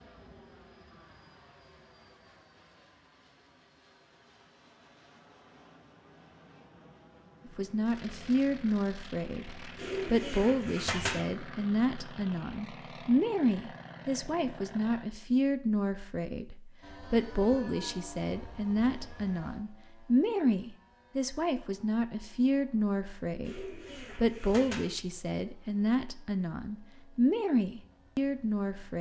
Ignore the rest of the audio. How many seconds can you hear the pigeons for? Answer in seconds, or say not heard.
3 s.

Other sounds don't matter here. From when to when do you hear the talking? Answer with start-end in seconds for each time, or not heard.
7.5-28.9.